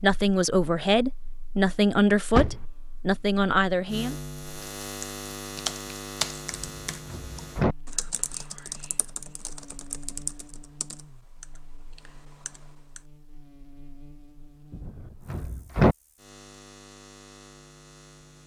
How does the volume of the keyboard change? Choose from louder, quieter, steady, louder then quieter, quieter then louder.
quieter.